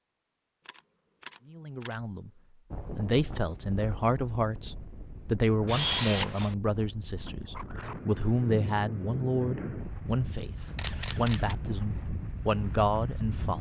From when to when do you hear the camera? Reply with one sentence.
You can hear the camera from 0.7 to 2.0 s, from 5.7 to 6.5 s and from 10.8 to 11.6 s.